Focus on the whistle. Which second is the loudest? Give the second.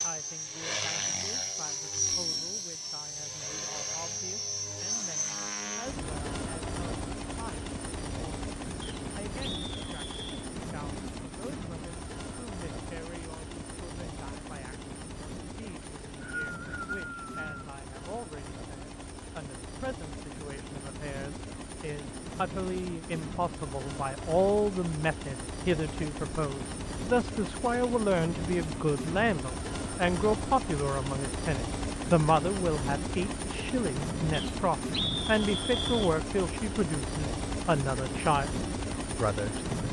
35 s.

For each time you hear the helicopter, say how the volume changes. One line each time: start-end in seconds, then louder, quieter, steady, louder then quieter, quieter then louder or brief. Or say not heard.
0.0-39.8 quieter then louder.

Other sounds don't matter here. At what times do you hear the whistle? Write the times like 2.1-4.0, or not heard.
8.8-10.4, 15.8-17.6, 34.3-36.1.